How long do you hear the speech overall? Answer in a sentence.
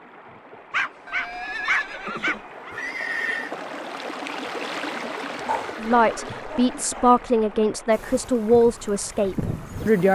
You can hear the speech for 4 seconds altogether.